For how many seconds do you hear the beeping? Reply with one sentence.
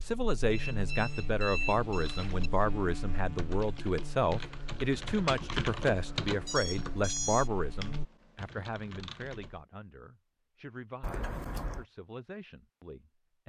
You can hear the beeping for 4 seconds altogether.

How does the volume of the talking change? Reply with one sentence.
The loudness of the talking goes down.